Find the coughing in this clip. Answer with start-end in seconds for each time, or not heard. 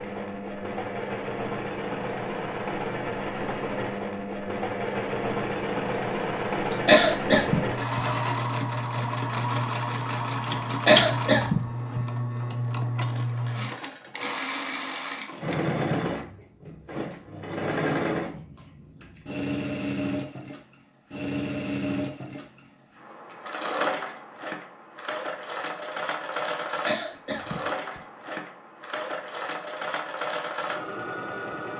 6.8-8.0, 10.8-12.0, 26.9-28.0.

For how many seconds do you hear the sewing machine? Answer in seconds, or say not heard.
32 s.